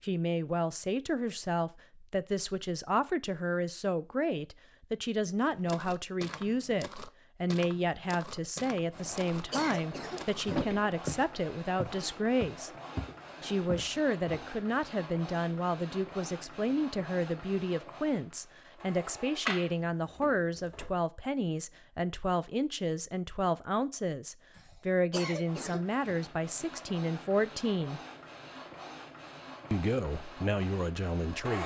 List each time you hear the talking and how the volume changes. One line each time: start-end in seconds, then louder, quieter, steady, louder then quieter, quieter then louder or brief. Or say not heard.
0.0-12.7 steady
13.4-28.0 steady
29.7-31.6 brief.